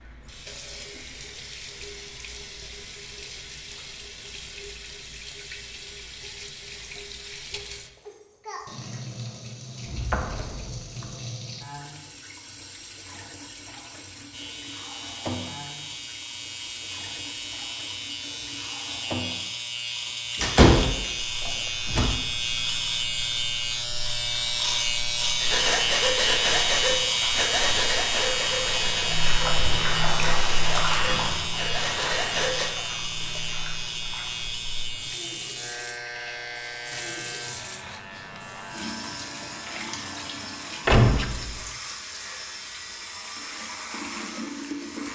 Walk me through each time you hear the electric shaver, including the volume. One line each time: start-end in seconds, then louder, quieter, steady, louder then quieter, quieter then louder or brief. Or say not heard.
14.3-45.1 louder then quieter.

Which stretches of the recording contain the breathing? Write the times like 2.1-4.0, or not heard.
25.4-32.7.